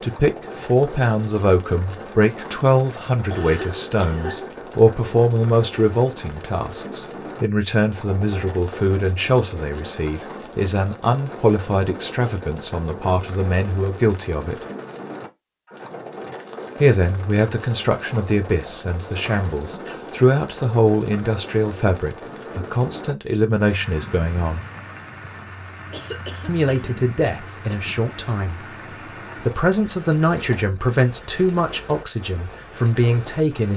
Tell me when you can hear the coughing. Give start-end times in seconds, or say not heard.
3.3-4.5, 19.2-20.1, 25.9-27.8.